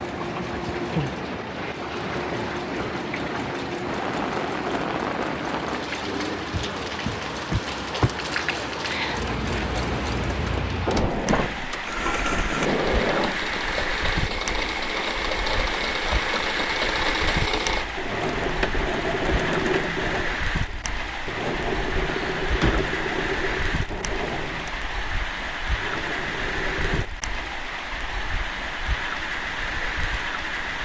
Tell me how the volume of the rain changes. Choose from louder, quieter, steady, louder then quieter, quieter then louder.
steady.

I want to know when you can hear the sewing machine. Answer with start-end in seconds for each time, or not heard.
0.0-27.1.